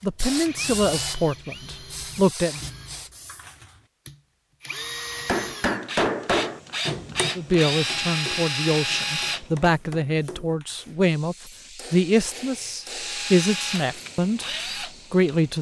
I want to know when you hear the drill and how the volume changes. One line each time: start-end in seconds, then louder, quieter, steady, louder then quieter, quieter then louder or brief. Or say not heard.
0.0-9.7 quieter then louder
12.8-15.5 brief.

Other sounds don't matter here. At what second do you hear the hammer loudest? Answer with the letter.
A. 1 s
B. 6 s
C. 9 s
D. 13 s
B.